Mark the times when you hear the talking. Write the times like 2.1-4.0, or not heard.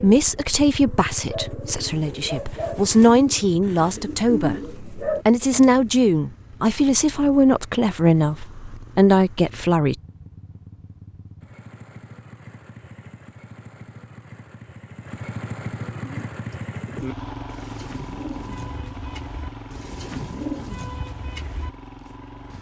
0.0-9.9.